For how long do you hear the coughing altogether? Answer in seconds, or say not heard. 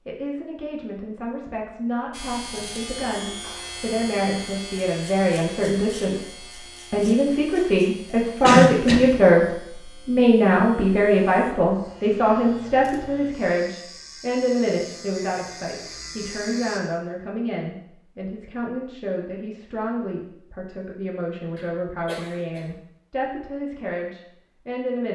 2 s.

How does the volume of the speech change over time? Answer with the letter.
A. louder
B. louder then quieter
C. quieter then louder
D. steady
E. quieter
B.